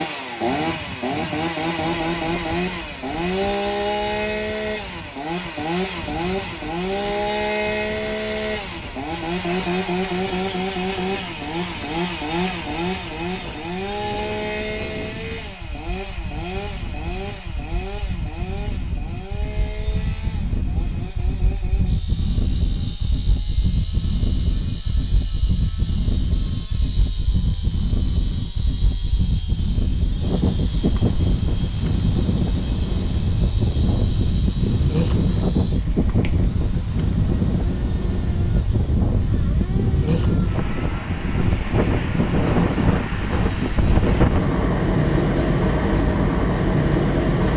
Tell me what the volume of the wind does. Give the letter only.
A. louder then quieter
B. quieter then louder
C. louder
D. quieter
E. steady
C.